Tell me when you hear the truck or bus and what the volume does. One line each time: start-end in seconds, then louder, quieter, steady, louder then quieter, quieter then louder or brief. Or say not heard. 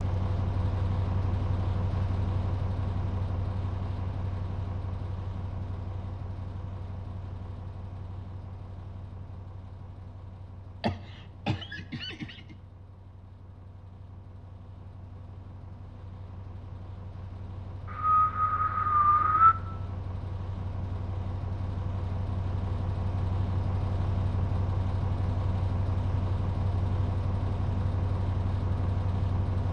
0.0-29.6 quieter then louder.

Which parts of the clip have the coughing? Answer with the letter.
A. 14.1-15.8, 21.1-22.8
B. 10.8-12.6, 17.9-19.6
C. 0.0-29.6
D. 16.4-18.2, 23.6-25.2
B.